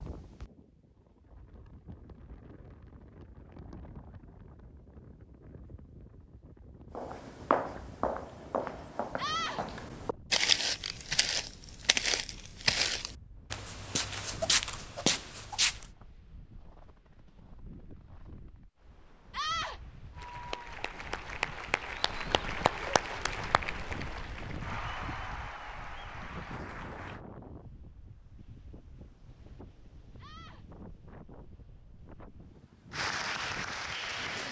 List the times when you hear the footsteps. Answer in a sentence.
You can hear the footsteps from 7.0 to 15.8 s.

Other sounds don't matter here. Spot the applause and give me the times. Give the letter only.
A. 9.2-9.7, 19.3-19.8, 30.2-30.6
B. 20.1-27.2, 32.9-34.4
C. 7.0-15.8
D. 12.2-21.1
B.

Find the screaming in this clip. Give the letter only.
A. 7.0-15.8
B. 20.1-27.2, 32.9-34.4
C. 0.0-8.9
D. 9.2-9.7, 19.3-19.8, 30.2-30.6
D.